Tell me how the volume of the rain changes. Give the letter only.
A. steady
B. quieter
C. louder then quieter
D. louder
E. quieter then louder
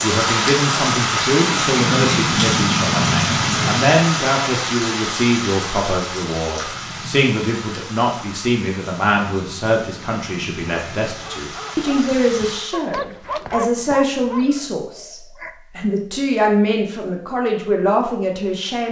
B.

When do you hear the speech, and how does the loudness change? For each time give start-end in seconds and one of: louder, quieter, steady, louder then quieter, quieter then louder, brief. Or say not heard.
0.0-18.8 steady.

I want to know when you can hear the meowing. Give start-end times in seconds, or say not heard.
not heard.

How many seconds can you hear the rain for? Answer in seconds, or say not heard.
13 s.